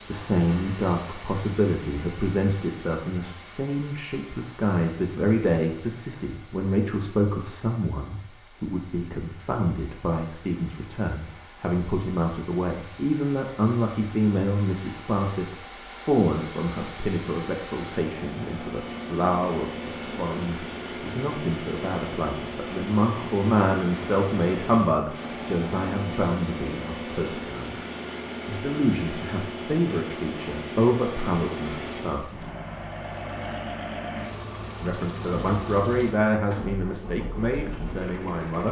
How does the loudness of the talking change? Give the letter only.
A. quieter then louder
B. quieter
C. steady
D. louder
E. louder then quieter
C.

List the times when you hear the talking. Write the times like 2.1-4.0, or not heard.
0.1-27.8, 28.4-32.5, 34.8-38.6.